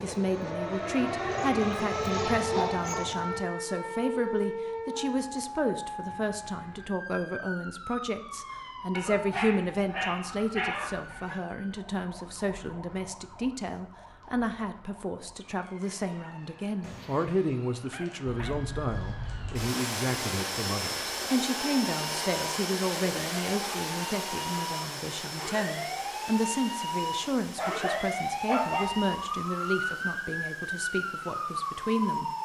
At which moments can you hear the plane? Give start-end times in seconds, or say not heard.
0.0-3.5, 18.2-32.4.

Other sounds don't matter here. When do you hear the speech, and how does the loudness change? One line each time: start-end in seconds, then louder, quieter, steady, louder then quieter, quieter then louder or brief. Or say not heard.
0.0-32.3 steady.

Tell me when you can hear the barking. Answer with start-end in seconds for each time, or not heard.
1.3-3.2, 8.9-11.4, 16.8-18.6, 27.6-28.9.